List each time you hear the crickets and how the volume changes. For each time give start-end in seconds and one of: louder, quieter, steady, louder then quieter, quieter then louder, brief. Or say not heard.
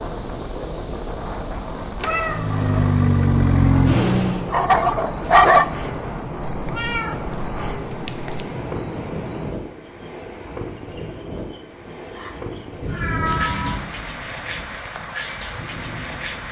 0.0-16.4 steady.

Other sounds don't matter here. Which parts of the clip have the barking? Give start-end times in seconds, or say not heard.
4.3-5.9.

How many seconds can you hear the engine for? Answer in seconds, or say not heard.
2 s.